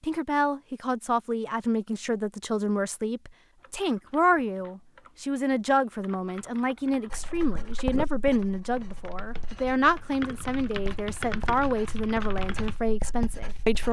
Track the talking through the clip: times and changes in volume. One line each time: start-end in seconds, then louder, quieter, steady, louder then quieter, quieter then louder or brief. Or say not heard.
0.0-13.8 steady.